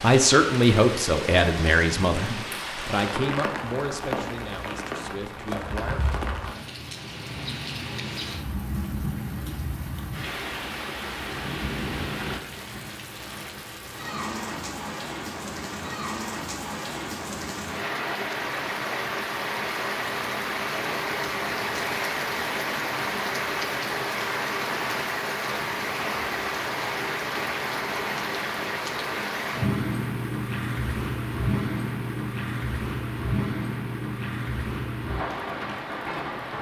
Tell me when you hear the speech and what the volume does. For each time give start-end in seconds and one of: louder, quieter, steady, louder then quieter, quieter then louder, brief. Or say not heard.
0.0-6.2 quieter.